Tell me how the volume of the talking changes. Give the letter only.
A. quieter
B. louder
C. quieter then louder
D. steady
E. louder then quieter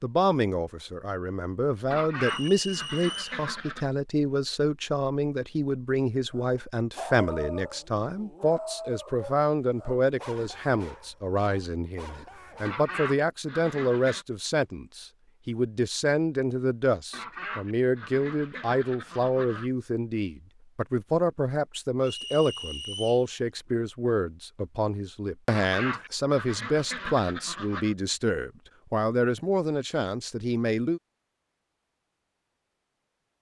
D.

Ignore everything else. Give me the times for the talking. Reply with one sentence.
The talking can be heard from 0.0 to 31.0 s.